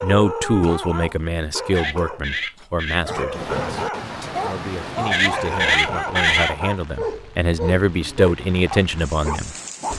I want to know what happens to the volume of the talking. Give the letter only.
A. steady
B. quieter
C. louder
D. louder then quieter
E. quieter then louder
E.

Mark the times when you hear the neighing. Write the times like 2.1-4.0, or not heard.
1.8-3.0, 5.1-6.5.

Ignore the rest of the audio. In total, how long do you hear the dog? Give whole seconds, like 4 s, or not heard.
10 s.